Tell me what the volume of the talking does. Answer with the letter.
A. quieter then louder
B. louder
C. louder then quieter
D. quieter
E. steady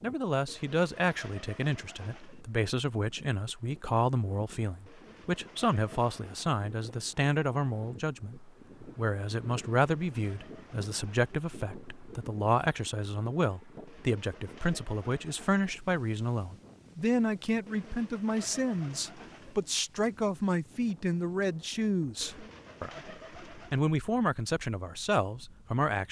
E.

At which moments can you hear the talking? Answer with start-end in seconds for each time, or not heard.
0.0-26.0.